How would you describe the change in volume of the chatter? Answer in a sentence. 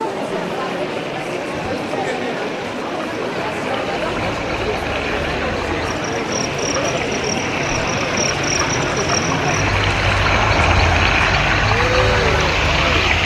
The loudness of the chatter stays about the same.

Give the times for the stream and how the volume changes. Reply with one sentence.
You can hear the stream from 0.1 to 13.2 s, getting louder.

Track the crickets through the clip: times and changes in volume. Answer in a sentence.
You can hear the crickets from 4.1 to 13.2 s, getting louder.